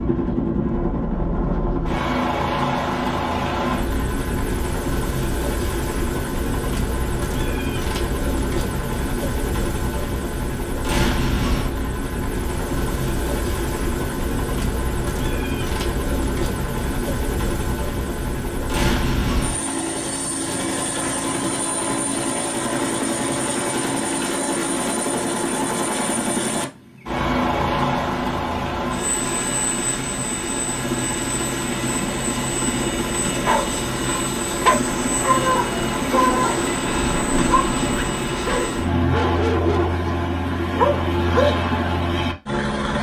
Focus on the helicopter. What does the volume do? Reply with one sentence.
The volume of the helicopter stays about the same.